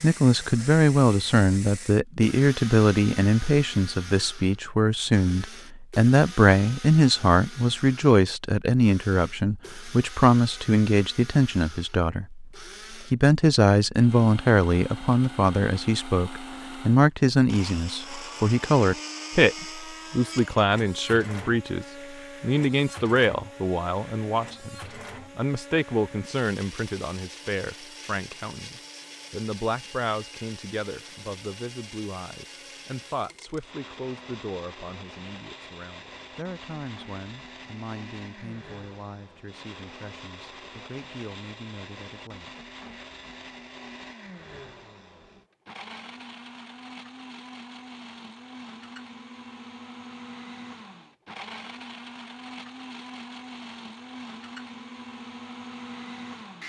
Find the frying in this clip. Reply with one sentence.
You can't hear the frying here.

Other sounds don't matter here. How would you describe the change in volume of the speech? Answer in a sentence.
The loudness of the speech goes down.